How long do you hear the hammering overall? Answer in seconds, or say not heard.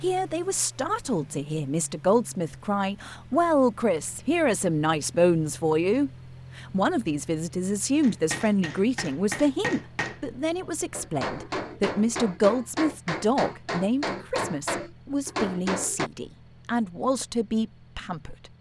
8 s.